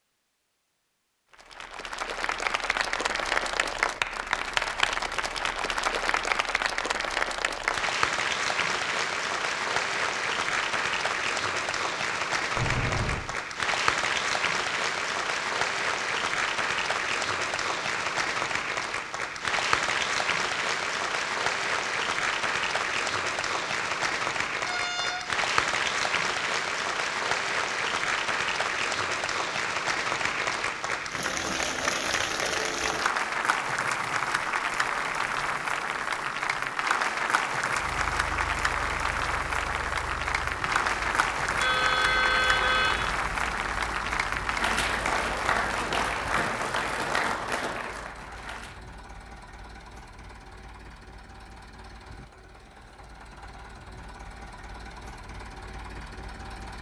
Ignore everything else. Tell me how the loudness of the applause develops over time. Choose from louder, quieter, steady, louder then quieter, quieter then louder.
steady.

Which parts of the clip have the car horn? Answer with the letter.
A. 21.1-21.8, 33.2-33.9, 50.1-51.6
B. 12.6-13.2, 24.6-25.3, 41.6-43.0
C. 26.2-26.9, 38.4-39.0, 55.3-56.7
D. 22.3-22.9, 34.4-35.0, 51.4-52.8
B.